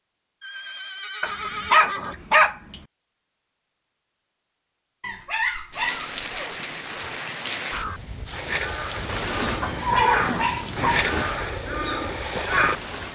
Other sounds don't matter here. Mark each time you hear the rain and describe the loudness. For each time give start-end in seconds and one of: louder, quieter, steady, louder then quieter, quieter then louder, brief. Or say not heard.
5.7-13.1 quieter.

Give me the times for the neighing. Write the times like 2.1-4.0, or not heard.
0.4-2.2, 9.4-11.2.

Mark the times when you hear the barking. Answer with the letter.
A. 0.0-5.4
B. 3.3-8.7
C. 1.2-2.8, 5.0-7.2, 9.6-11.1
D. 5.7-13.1
C.